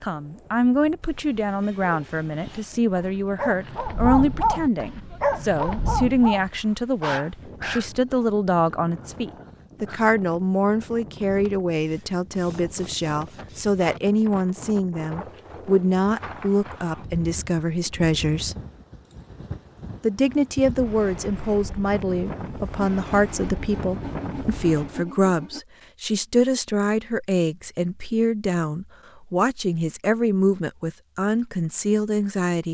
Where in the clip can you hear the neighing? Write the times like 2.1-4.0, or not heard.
not heard.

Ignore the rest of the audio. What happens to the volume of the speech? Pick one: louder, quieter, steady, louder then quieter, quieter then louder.
steady.